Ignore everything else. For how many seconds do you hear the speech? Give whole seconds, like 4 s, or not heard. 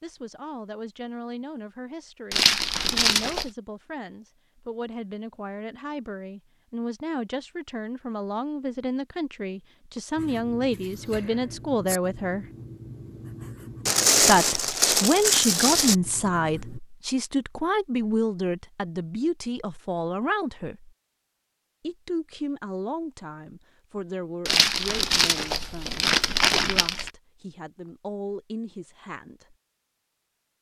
27 s.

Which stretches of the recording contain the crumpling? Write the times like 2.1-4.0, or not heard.
2.3-3.5, 13.8-15.9, 24.4-27.1.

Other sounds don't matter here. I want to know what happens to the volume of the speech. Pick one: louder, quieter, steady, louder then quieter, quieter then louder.
louder then quieter.